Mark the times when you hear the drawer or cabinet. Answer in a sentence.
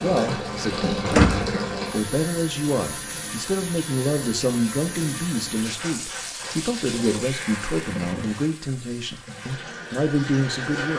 You can hear the drawer or cabinet from 1.1 to 1.6 s.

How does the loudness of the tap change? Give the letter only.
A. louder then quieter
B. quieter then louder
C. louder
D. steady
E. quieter
E.